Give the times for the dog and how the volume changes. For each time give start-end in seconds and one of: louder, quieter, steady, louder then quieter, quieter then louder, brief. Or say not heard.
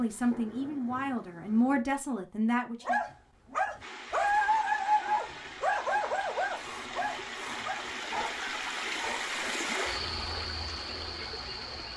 2.8-9.3 quieter.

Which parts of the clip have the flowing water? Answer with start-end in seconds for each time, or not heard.
3.8-11.9.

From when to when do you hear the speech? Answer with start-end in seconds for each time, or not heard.
0.0-3.0.